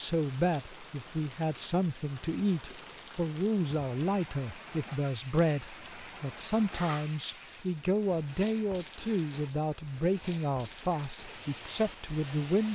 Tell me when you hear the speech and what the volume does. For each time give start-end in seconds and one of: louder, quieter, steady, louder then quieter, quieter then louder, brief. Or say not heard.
0.0-12.7 steady.